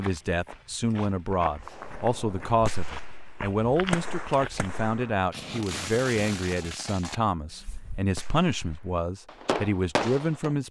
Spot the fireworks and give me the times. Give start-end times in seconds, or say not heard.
1.6-10.6.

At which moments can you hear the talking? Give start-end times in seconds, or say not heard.
0.0-10.6.